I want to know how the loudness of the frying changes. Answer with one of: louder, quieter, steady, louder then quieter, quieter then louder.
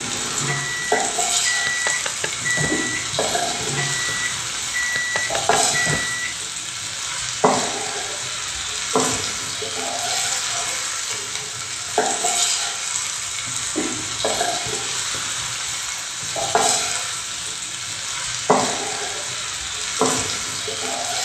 steady.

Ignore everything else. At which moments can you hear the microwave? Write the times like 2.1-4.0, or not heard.
0.0-6.3.